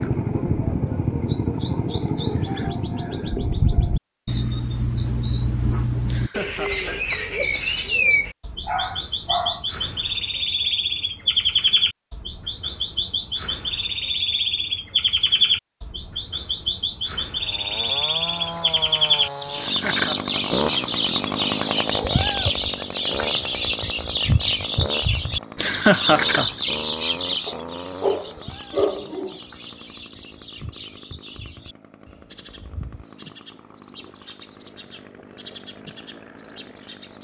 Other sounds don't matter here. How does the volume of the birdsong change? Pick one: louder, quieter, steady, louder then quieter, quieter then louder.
quieter.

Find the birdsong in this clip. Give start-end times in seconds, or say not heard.
0.0-37.1.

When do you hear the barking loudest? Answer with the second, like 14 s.
29 s.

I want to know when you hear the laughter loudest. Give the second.
26 s.